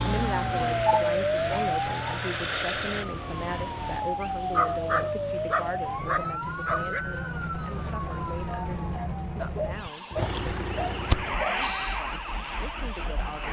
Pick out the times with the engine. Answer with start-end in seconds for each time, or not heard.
0.1-3.0, 10.2-13.4.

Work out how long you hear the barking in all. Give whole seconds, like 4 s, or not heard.
6 s.